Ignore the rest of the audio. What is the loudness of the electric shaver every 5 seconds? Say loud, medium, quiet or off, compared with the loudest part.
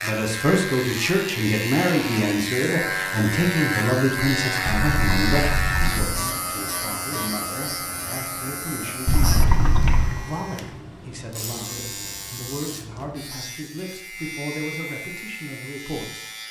loud, loud, medium, medium.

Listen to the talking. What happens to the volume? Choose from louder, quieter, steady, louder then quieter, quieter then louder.
quieter.